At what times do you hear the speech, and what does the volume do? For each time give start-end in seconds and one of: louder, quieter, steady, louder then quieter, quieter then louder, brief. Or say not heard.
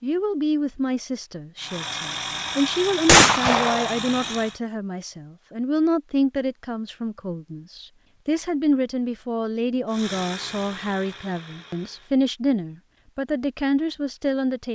0.0-14.7 steady.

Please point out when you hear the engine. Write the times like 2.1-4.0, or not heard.
1.6-4.6, 9.8-12.2.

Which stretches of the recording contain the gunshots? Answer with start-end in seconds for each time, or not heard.
3.0-4.0.